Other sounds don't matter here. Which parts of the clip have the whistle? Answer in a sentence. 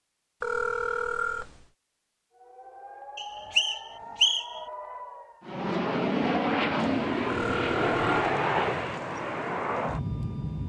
The whistle can be heard from 3.1 to 4.6 s.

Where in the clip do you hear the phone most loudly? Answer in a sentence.
The volume of the phone peaks at 1 second.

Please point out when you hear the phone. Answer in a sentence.
You can hear the phone from 0.4 to 1.6 s and from 7.2 to 8.2 s.